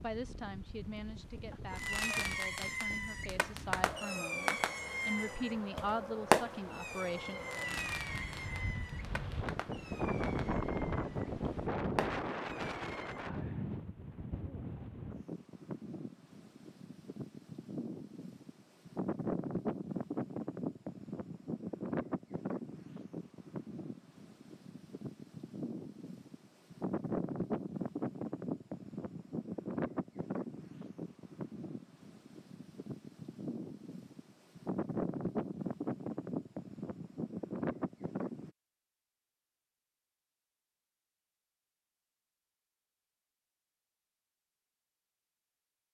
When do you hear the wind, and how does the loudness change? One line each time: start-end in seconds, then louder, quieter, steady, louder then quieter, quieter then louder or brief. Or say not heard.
0.0-38.5 louder.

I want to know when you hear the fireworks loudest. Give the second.
6 s.